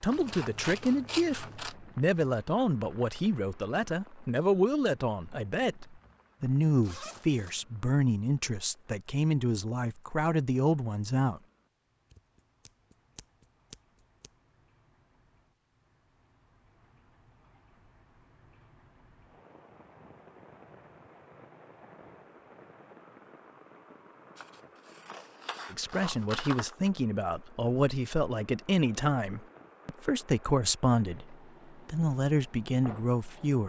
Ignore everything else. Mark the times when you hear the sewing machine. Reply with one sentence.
The sewing machine can't be heard in this clip.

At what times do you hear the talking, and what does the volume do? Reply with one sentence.
You can hear the talking from 0.0 to 11.4 s, at a steady volume; and from 25.7 to 33.6 s, at a steady volume.